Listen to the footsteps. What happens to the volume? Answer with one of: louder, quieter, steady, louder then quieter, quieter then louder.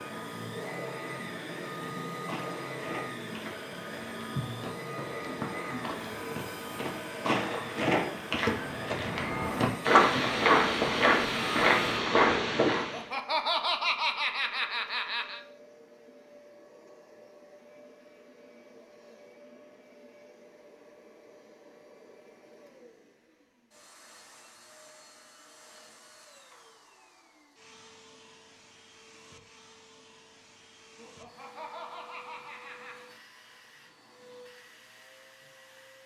louder.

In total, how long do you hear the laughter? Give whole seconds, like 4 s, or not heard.
5 s.